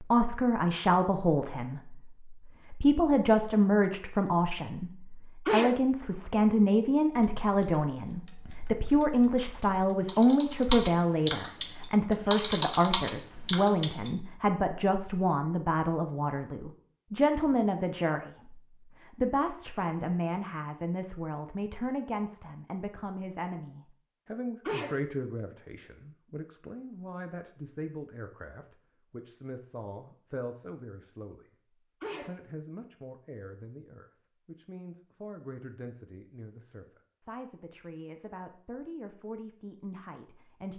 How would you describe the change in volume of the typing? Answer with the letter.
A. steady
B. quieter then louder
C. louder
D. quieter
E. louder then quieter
C.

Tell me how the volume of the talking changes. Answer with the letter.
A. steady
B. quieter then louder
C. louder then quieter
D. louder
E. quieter
E.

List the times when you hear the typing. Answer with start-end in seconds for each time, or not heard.
7.1-14.1.